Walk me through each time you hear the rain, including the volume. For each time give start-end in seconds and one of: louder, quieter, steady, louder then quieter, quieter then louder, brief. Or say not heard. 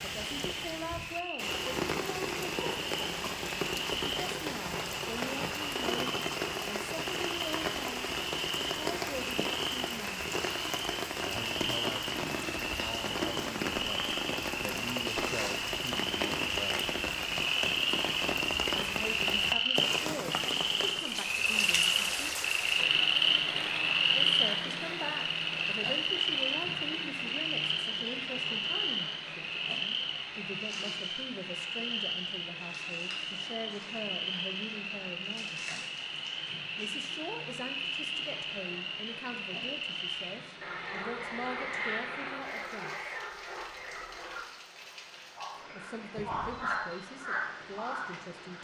0.0-48.5 quieter.